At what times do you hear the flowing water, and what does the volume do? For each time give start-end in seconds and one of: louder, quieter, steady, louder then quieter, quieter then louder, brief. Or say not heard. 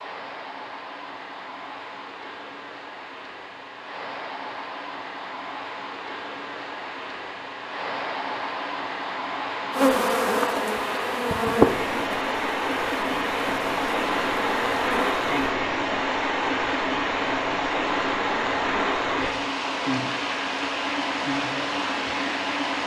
0.0-22.8 louder.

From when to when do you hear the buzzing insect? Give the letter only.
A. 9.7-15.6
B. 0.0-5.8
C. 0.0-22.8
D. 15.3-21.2
A.